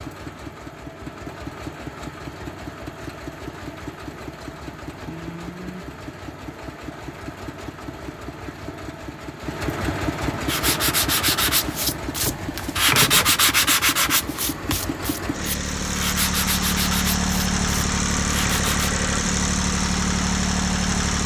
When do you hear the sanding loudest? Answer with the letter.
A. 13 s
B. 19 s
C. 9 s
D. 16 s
A.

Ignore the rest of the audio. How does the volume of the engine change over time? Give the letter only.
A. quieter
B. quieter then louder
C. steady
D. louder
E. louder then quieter
D.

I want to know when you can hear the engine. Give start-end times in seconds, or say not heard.
0.0-21.2.